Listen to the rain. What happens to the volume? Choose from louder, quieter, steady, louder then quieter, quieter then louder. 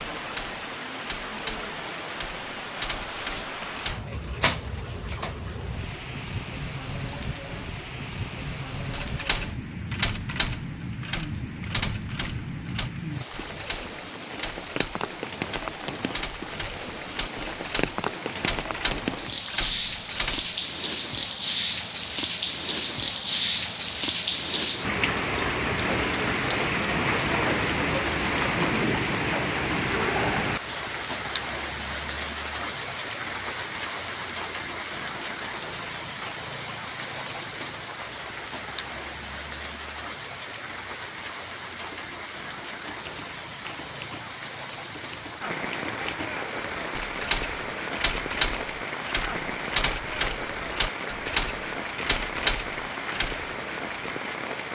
louder then quieter.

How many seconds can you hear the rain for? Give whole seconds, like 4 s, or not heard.
55 s.